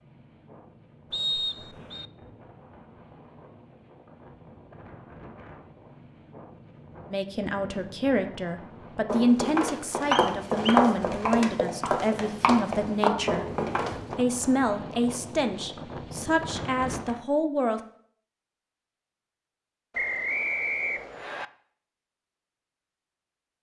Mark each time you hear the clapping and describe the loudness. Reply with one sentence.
The clapping can't be heard in this clip.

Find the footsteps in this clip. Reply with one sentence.
You can hear the footsteps from 9.1 to 14.2 s.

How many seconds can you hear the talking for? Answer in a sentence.
You can hear the talking for 10 seconds altogether.